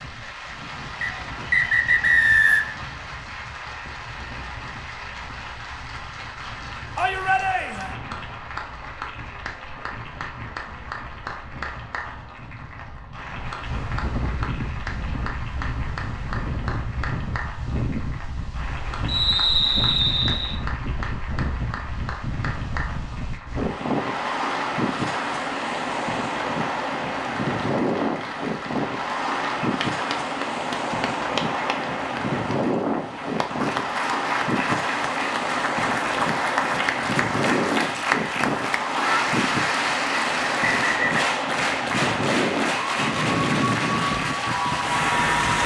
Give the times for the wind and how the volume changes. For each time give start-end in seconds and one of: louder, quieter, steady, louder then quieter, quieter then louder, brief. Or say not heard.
0.0-45.6 louder.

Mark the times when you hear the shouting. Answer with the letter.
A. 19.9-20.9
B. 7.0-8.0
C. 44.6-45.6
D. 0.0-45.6
B.